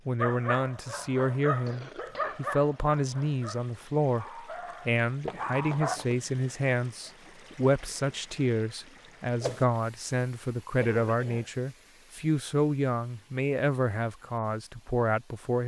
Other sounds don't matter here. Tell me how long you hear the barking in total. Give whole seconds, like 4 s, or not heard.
6 s.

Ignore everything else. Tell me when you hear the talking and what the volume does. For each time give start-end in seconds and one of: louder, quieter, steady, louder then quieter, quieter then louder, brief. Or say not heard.
0.1-15.6 steady.